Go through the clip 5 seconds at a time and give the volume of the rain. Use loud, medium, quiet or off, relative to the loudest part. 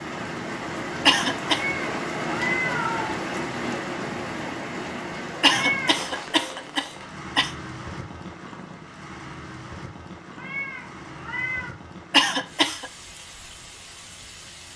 loud, medium, quiet.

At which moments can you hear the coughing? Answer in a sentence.
You can hear the coughing from 1.1 to 1.6 s, from 5.4 to 7.5 s and from 12.1 to 12.9 s.